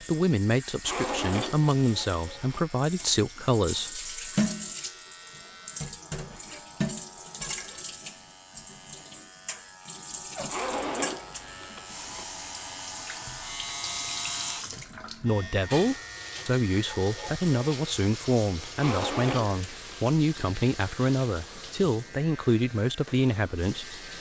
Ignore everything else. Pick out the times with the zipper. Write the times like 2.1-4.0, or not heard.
0.8-2.6, 10.4-12.2, 18.8-20.1.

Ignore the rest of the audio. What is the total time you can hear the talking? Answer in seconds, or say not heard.
13 s.